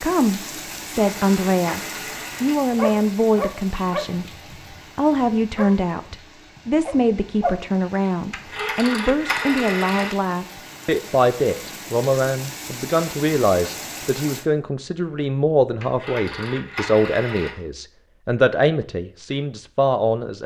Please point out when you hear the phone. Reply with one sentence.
The phone can be heard from 0.8 to 2.5 s, from 8.3 to 10.2 s and from 15.8 to 17.6 s.